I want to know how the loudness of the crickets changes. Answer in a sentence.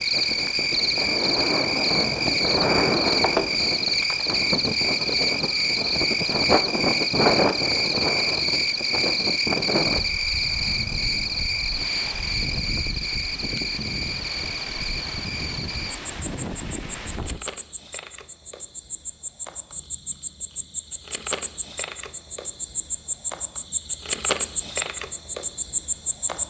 The loudness of the crickets goes down, then up.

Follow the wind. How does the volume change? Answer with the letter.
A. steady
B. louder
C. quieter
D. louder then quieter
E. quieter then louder
C.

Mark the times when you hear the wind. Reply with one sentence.
The wind can be heard from 0.0 to 17.4 s.